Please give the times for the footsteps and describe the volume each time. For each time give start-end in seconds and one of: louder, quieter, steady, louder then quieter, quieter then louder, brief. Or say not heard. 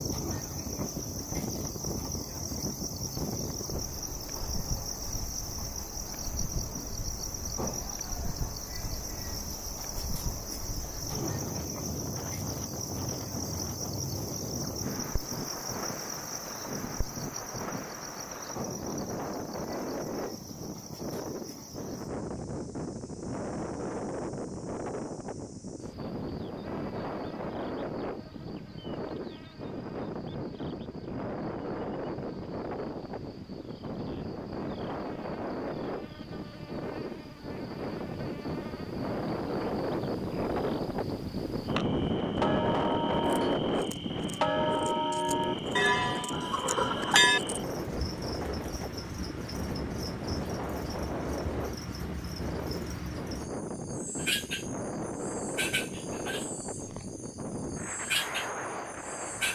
not heard.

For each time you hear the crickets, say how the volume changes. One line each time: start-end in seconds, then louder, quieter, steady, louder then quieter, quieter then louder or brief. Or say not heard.
0.0-59.4 quieter then louder.